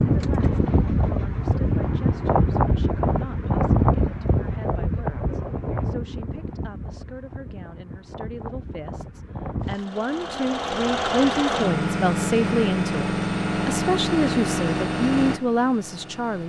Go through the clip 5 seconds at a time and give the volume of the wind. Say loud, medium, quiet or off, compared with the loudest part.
loud, medium, off, off.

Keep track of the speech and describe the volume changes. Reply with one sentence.
The volume of the speech goes up.